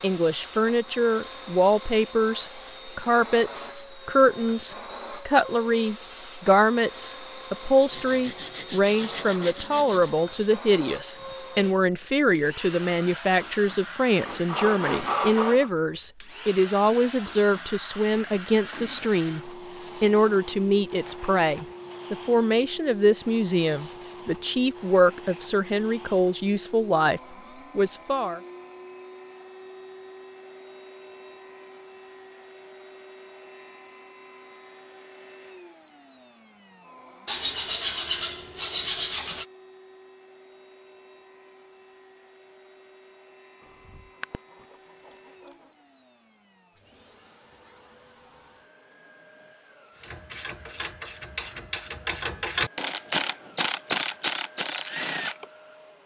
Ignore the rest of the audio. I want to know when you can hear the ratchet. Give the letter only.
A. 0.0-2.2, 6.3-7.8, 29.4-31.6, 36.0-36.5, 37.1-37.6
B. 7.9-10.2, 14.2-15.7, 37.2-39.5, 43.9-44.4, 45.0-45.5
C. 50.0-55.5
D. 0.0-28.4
C.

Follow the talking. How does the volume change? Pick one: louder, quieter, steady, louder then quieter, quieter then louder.
steady.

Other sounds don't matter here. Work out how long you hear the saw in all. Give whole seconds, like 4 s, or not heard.
7 s.